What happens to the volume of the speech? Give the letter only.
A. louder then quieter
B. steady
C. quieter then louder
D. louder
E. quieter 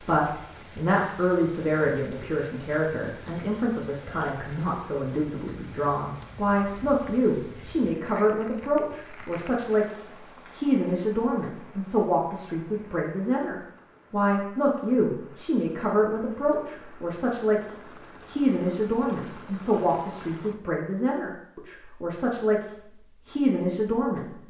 B.